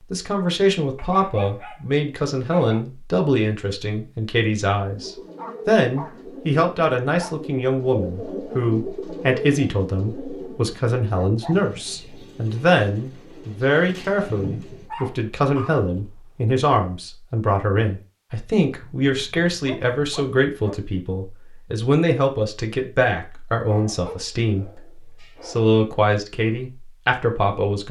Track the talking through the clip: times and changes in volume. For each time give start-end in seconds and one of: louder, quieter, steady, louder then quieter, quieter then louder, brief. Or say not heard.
0.1-27.8 steady.